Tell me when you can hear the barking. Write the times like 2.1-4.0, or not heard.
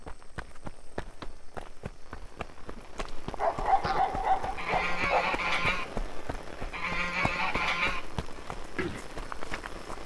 3.4-5.3.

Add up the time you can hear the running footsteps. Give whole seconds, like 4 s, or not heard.
10 s.